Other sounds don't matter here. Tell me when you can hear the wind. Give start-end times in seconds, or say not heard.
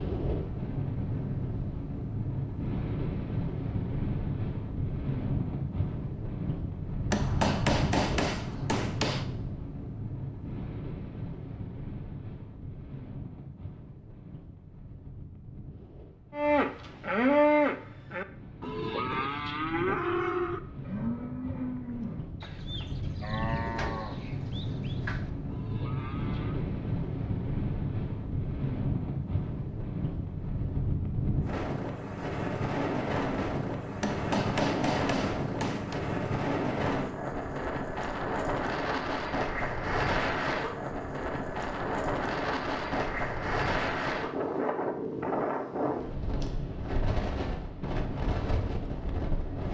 0.0-49.6.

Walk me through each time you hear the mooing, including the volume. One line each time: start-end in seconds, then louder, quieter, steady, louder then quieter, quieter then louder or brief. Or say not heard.
16.3-26.6 quieter.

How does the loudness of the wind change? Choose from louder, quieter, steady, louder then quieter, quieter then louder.
quieter then louder.